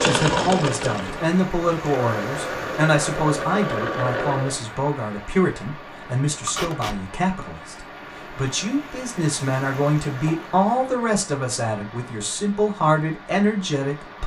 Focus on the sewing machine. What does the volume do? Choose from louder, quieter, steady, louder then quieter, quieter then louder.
quieter then louder.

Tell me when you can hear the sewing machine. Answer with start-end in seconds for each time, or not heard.
0.0-4.6.